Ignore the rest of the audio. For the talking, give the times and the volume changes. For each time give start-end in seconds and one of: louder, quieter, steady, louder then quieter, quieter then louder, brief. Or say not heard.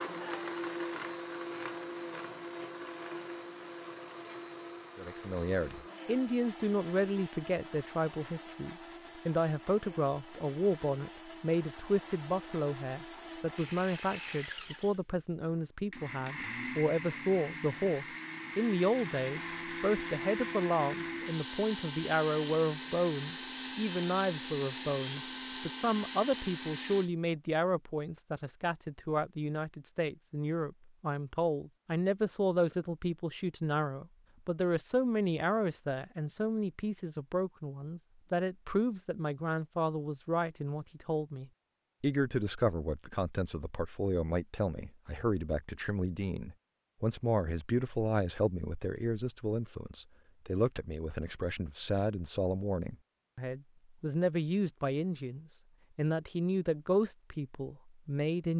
5.0-58.5 steady.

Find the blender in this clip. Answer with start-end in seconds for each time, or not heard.
0.0-27.1.